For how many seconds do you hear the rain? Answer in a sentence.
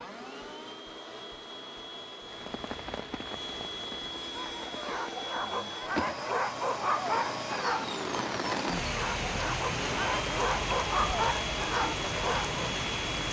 You can hear the rain for 11 seconds altogether.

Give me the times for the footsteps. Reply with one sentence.
The footsteps can't be heard in this clip.